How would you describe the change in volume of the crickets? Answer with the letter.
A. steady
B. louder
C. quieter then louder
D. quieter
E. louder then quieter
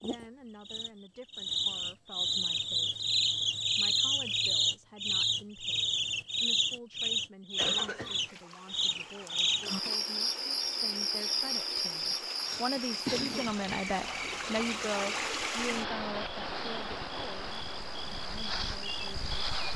D.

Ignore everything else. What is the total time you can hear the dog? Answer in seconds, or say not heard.
not heard.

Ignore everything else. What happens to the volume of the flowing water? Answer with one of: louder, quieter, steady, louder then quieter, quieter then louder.
louder then quieter.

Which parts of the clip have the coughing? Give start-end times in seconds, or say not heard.
7.5-8.3, 12.4-13.5.